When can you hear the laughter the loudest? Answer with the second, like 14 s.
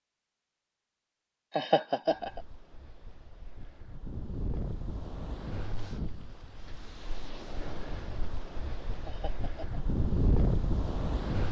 2 s.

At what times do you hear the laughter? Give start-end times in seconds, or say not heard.
1.6-2.4, 9.1-9.8.